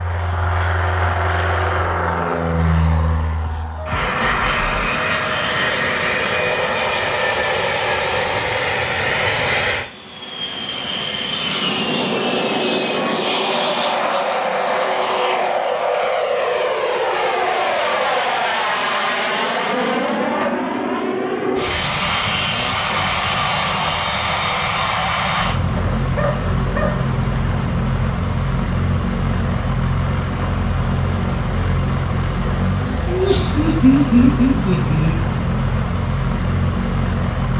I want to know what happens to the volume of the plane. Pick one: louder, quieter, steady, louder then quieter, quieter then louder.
steady.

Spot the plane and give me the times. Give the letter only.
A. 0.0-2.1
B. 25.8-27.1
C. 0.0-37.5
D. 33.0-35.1
C.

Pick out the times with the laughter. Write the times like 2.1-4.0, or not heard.
33.0-35.1.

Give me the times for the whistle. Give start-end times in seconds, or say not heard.
not heard.